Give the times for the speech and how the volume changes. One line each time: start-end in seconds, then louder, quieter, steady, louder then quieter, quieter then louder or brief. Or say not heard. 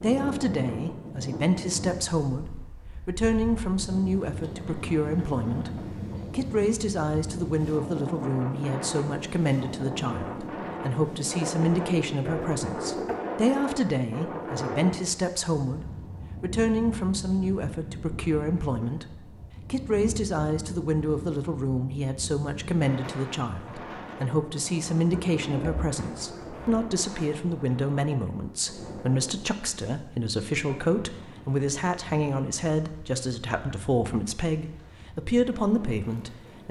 0.0-2.5 brief
3.0-15.8 steady
16.4-36.6 steady.